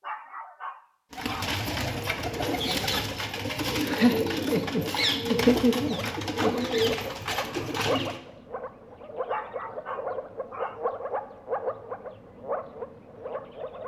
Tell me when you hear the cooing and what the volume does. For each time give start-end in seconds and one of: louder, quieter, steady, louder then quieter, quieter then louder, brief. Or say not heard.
1.1-8.2 steady.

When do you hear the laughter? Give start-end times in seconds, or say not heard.
3.8-6.5.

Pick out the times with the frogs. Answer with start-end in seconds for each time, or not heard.
5.8-13.8.